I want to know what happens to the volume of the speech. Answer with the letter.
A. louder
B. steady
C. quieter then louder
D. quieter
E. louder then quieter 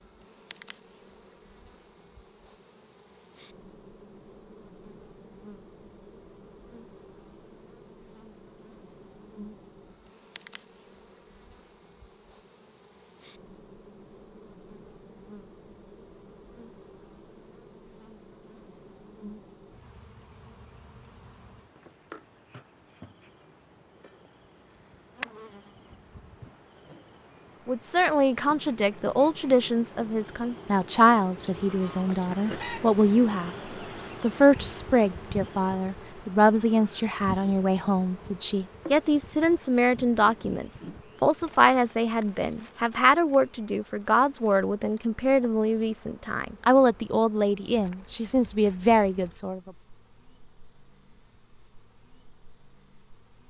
B.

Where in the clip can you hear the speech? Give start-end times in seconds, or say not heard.
27.6-33.5, 34.2-49.7.